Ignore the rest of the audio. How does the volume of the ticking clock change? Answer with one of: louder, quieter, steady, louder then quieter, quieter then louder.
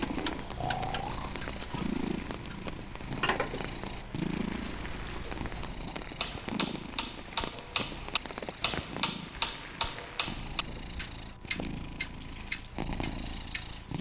louder.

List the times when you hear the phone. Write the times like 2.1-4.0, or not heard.
not heard.